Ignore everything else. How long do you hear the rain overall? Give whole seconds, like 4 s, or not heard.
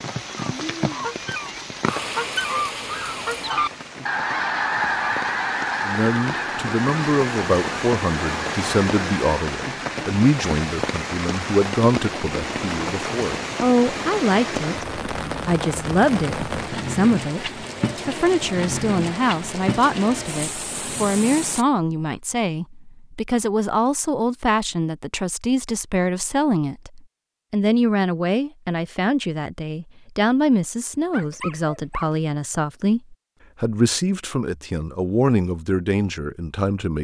22 s.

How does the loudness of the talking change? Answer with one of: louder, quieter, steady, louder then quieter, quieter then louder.
steady.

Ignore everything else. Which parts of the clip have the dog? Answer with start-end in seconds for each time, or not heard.
30.8-32.1.